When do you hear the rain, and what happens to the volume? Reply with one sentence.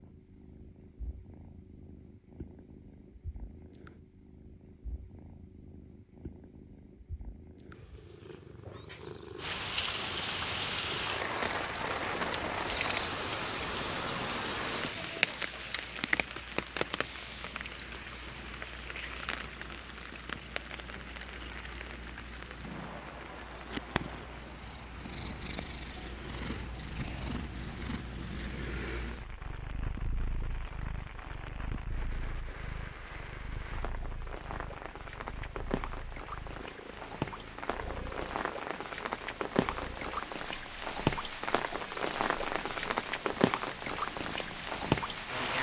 You can hear the rain from 9.3 to 45.5 s, getting quieter then louder.